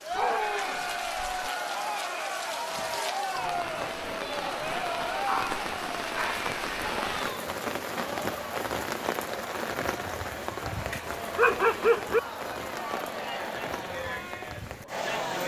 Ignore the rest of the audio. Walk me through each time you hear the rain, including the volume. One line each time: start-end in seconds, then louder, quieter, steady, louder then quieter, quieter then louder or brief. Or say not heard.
0.0-15.4 louder then quieter.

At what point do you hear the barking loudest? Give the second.
12 s.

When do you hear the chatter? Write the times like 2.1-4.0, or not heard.
0.0-15.4.